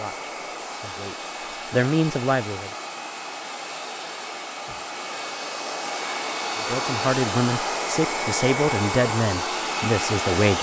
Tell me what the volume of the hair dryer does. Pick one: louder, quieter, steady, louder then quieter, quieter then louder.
louder.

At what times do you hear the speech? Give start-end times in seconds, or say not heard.
0.0-2.7, 6.6-10.5.